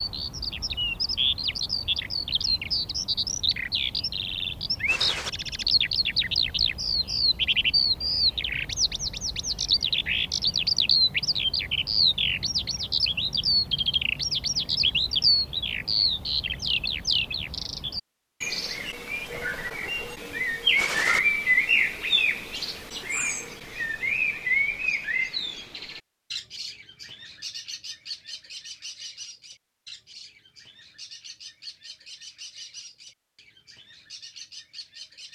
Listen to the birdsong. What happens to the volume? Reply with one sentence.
The loudness of the birdsong goes down.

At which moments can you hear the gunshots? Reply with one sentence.
You can hear the gunshots from 4.8 to 5.3 s and from 20.8 to 21.2 s.